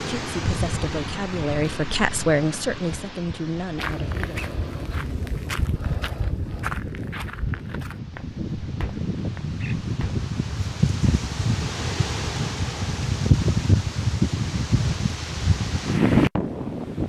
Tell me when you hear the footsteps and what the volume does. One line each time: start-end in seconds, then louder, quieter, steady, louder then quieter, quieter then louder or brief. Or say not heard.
3.8-10.2 quieter.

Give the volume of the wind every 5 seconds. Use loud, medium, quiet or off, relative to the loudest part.
medium, medium, loud, loud.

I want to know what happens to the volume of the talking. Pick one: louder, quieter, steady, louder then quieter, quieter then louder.
louder then quieter.